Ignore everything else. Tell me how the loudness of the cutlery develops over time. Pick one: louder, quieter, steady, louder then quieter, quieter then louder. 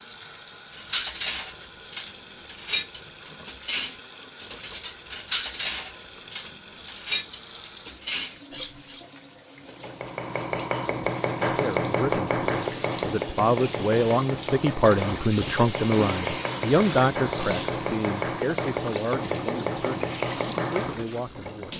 steady.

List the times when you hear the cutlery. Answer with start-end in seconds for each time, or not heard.
0.7-9.1.